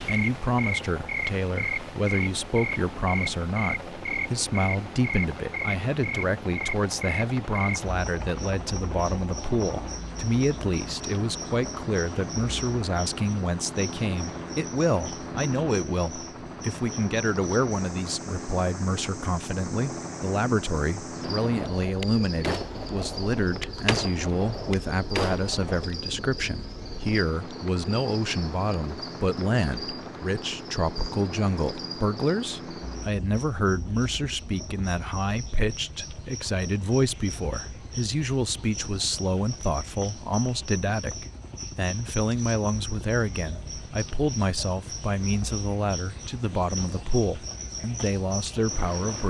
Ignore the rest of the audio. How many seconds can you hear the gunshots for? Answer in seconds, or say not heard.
5 s.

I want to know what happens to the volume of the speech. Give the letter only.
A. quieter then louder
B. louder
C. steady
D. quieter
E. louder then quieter
C.